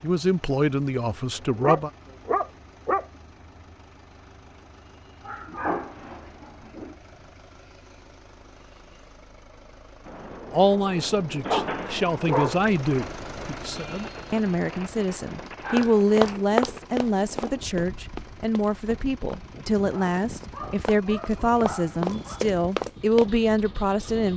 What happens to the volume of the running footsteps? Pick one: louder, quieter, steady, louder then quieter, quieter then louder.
quieter then louder.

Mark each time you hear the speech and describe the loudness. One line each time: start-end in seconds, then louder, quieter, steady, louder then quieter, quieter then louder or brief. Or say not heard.
0.0-1.9 brief
10.5-24.3 steady.